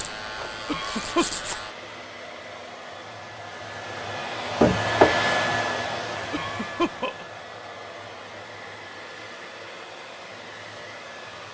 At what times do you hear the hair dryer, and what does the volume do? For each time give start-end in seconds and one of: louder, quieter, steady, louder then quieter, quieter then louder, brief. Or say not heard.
0.0-11.5 louder then quieter.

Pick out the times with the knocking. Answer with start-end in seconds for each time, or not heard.
4.6-5.2.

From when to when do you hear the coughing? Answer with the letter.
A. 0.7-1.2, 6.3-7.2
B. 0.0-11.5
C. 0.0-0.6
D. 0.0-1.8
A.